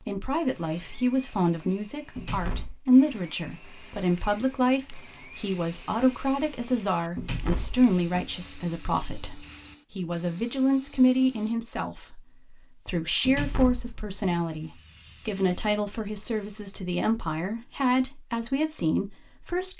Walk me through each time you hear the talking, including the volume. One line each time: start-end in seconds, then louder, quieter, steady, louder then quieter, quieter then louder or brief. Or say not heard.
0.1-19.7 steady.